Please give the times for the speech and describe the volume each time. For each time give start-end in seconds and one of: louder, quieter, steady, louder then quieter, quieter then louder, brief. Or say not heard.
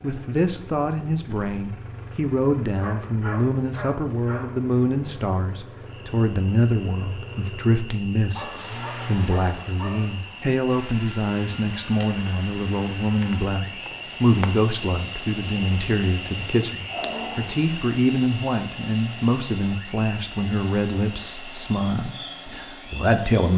0.0-23.5 steady.